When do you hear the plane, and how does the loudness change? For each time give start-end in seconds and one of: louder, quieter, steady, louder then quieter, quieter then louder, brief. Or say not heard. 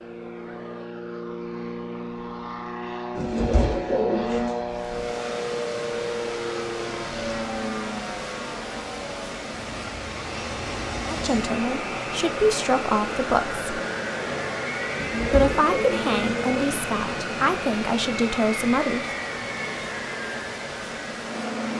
0.0-21.7 steady.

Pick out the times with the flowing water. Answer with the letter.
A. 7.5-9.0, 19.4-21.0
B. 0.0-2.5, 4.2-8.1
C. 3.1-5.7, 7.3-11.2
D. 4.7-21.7
D.